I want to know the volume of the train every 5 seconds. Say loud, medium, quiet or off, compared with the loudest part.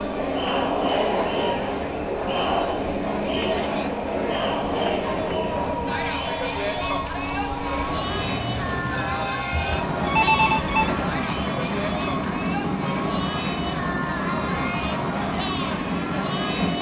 medium, loud, loud, loud.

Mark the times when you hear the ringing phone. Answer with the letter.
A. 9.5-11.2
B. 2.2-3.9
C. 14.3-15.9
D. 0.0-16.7
A.